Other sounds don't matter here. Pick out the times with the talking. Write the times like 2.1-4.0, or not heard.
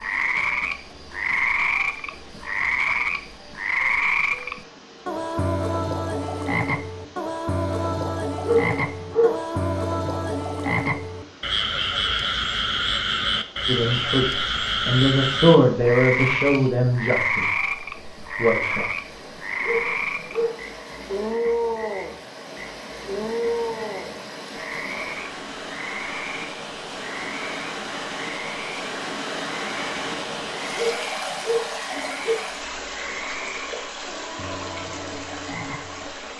13.7-17.6, 18.4-18.9.